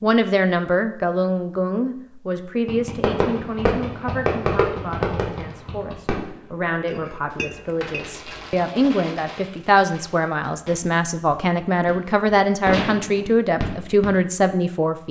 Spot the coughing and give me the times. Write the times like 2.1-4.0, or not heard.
not heard.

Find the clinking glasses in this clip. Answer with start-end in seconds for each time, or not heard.
6.8-8.4.